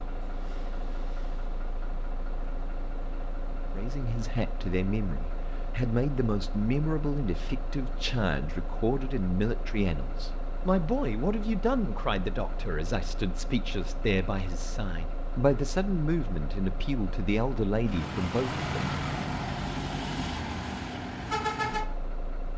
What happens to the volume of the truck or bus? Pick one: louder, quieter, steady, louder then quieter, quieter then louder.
louder.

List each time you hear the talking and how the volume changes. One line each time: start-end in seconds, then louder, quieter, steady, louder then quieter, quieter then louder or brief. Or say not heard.
3.8-19.0 steady.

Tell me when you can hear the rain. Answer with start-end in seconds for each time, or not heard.
not heard.